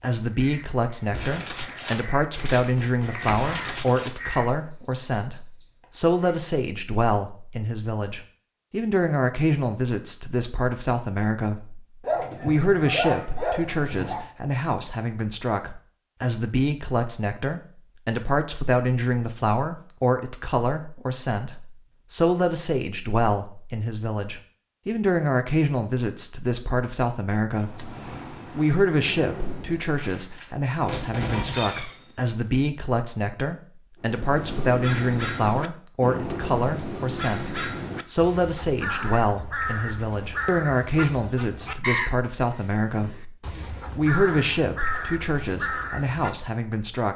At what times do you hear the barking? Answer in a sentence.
The barking can be heard from 12.0 to 14.2 s.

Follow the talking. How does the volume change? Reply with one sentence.
The volume of the talking stays about the same.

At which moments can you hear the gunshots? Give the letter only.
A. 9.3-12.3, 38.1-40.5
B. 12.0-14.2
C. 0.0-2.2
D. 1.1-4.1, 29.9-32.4
D.